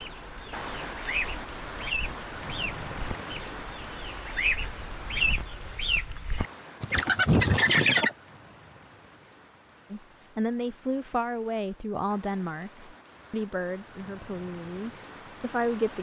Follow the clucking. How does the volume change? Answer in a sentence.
The loudness of the clucking goes up.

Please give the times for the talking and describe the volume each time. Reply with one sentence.
You can hear the talking from 9.9 to 15.9 s, getting quieter.